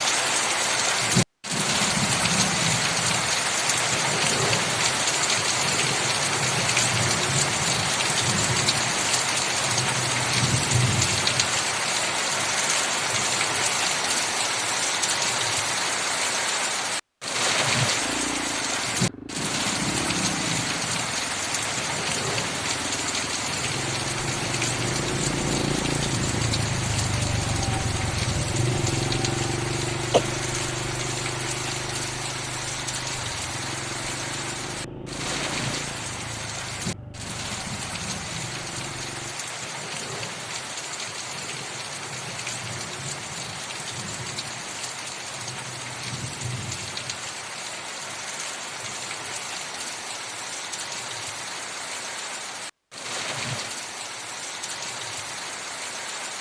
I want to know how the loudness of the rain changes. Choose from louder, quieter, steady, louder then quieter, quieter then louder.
quieter.